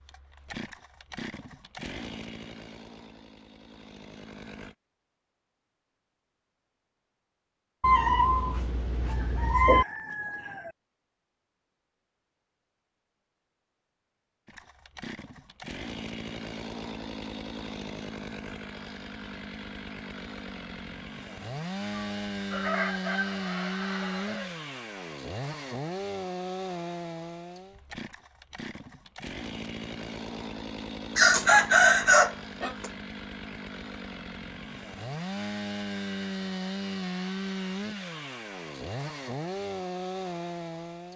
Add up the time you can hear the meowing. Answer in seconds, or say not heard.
2 s.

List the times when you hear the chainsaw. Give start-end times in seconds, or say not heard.
0.0-4.8, 14.4-41.1.